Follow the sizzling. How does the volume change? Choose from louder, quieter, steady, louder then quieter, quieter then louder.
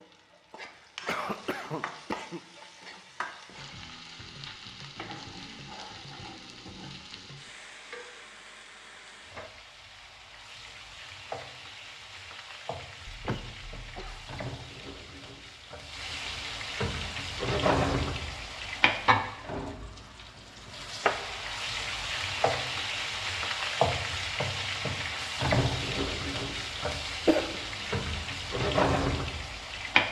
louder.